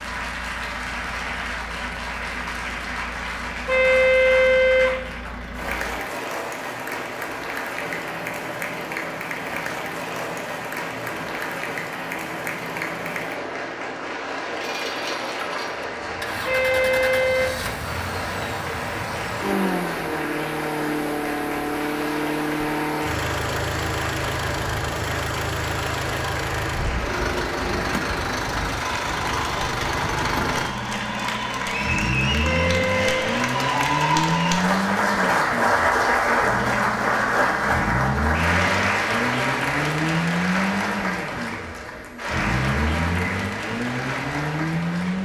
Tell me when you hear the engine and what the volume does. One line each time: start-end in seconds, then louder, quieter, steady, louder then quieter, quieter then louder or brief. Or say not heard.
0.0-45.2 louder.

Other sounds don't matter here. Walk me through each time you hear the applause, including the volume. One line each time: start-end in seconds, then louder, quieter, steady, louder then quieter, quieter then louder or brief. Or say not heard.
0.0-45.2 louder.